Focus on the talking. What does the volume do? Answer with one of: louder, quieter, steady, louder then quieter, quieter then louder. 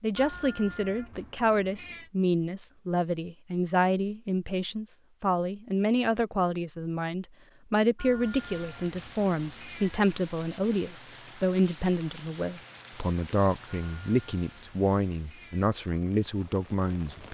steady.